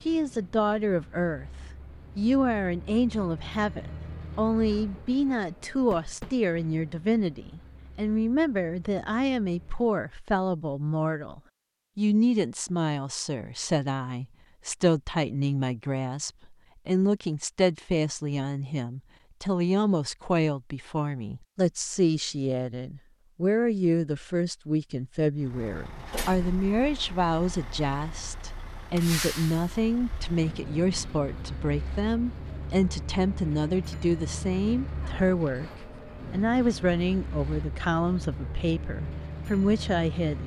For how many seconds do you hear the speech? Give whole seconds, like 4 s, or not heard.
39 s.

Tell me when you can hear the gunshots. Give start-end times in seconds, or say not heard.
not heard.